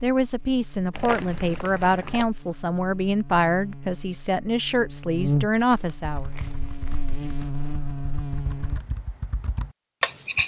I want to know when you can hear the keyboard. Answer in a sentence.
You can hear the keyboard from 6.0 to 10.4 s.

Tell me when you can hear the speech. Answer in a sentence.
You can hear the speech from 0.0 to 6.3 s.